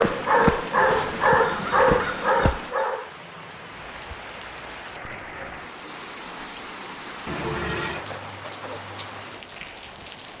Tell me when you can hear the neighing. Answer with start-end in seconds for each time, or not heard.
0.8-2.0, 7.2-8.1.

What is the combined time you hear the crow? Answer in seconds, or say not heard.
3 s.